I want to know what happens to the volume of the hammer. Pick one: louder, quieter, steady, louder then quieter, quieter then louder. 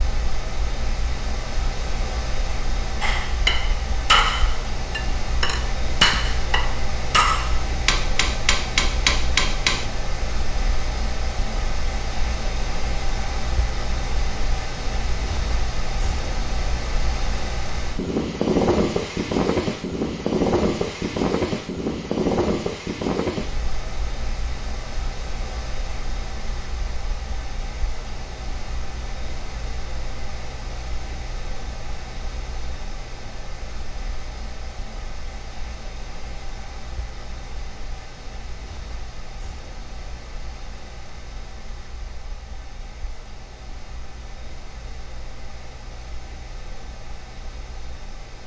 quieter then louder.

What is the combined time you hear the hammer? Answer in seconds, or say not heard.
7 s.